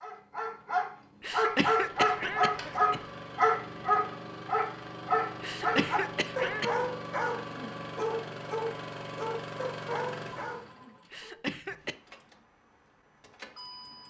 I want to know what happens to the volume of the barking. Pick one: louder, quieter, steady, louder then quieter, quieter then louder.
quieter.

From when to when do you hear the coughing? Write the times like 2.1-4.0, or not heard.
1.2-3.0, 5.4-6.9, 11.1-11.9.